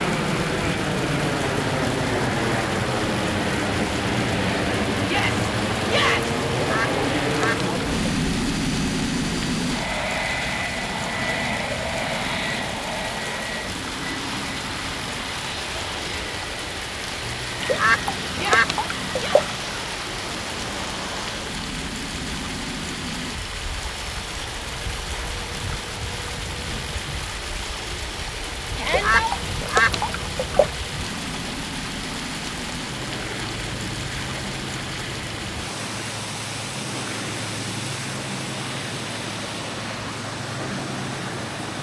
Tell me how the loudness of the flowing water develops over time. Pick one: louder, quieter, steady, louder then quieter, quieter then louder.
steady.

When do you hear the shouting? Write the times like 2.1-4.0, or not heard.
5.0-6.3, 18.4-19.4, 28.8-29.4.